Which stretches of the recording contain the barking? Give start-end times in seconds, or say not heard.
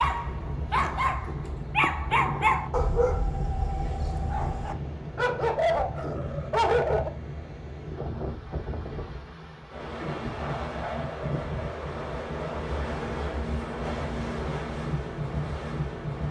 0.0-7.1.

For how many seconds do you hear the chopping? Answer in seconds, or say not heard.
not heard.